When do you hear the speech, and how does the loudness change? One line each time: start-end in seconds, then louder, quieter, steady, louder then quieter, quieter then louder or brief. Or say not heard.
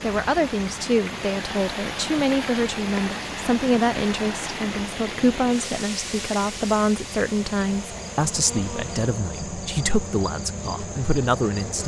0.0-11.8 steady.